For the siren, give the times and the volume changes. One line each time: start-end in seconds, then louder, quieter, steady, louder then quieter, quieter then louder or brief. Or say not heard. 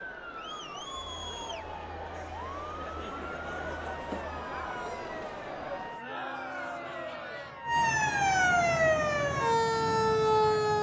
0.0-10.7 louder.